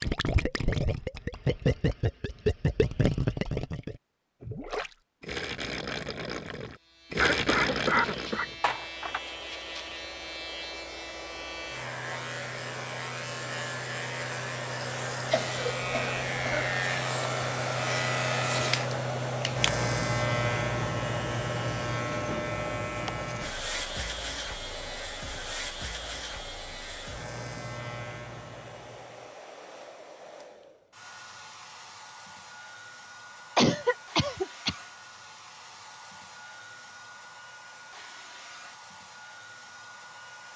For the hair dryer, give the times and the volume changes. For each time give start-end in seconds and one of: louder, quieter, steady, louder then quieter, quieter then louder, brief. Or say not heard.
8.7-40.5 louder then quieter.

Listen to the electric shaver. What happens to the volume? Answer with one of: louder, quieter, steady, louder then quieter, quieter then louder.
louder then quieter.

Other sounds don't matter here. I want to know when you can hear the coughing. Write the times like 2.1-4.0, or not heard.
7.2-9.2, 15.3-16.8, 33.5-34.8.